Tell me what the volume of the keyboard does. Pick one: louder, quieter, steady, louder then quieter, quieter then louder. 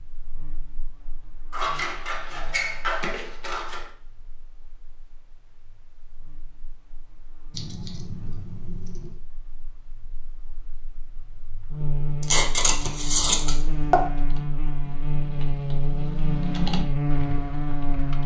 louder then quieter.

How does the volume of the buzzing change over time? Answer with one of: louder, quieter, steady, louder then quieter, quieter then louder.
quieter then louder.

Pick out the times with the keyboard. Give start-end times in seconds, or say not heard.
14.0-18.2.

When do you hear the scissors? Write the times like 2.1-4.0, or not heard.
1.5-3.9, 7.5-9.2, 12.2-13.9.